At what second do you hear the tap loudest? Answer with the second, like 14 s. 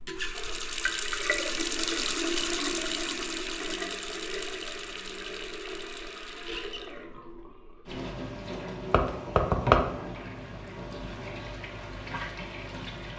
2 s.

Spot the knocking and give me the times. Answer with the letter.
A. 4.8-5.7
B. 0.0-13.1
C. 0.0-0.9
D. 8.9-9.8
D.